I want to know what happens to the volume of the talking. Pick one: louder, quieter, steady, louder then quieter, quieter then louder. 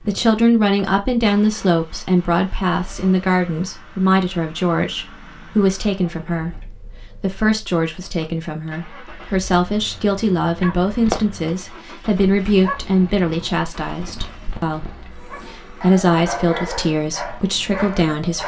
steady.